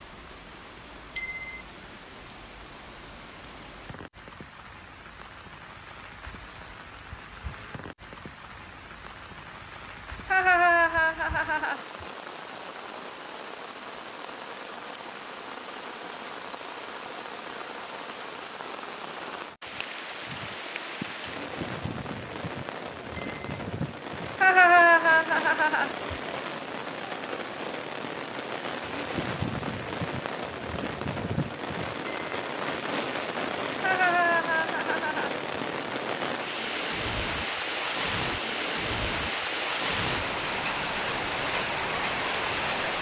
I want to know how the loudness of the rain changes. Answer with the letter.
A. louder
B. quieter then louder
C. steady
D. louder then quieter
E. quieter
A.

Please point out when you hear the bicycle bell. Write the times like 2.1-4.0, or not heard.
1.1-1.6, 23.1-23.6, 32.0-32.5.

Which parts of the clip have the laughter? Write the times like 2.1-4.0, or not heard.
10.3-11.8, 24.4-25.9, 33.8-35.4.